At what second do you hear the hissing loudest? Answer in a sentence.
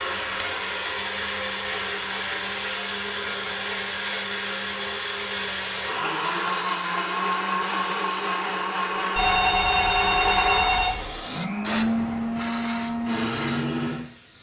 The volume of the hissing peaks at 11 seconds.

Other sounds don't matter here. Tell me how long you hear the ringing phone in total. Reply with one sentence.
The ringing phone can be heard for 2 seconds in total.